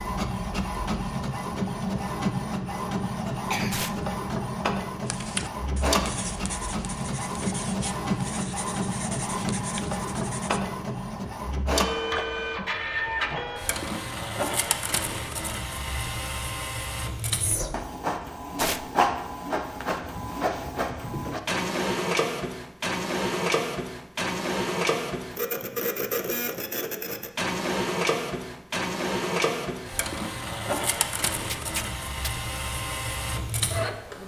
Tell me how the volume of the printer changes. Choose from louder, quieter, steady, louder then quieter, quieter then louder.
steady.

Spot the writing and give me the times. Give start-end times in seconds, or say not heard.
5.0-10.6.